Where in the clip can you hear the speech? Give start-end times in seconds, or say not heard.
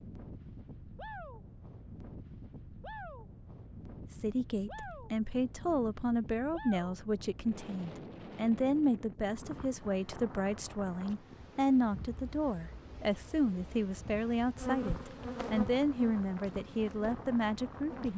4.1-18.1.